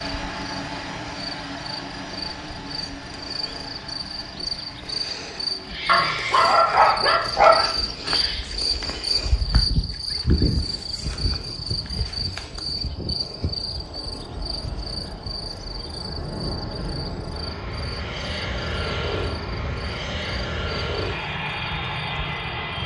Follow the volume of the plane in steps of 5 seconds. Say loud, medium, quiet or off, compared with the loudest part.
medium, quiet, quiet, loud, loud.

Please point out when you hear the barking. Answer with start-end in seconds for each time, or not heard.
5.8-7.7.